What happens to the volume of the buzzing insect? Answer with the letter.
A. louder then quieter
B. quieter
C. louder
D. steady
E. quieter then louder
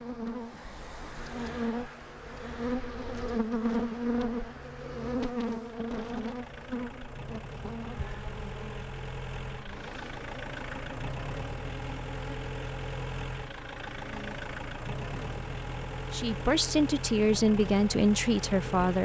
B.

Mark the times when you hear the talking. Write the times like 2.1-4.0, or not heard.
16.1-19.0.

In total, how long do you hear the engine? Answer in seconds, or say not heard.
19 s.